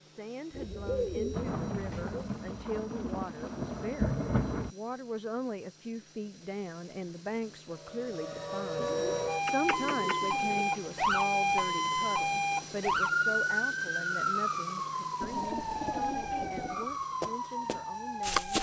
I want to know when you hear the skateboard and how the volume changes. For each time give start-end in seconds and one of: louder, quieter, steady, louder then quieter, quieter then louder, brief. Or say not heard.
not heard.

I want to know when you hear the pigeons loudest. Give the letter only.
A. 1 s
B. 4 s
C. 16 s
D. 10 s
A.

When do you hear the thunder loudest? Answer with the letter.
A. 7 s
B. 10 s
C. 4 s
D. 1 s
C.